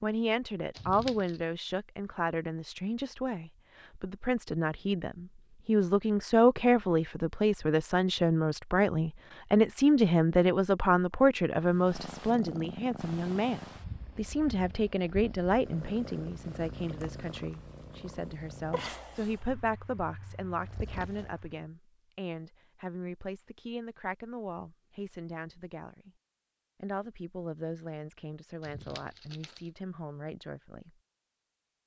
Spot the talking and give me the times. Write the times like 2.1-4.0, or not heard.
0.0-26.1, 26.8-30.9.